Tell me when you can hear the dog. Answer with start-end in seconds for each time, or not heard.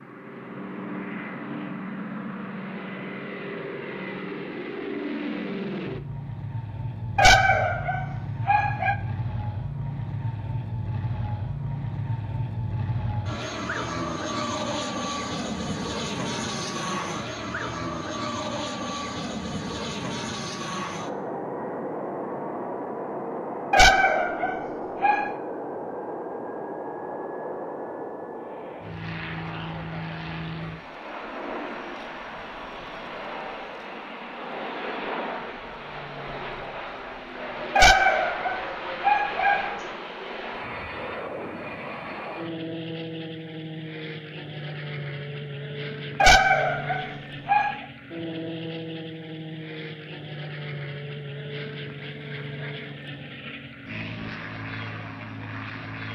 7.2-8.9, 23.7-25.3, 37.8-39.8, 46.2-47.8.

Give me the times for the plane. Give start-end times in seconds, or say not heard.
0.0-56.1.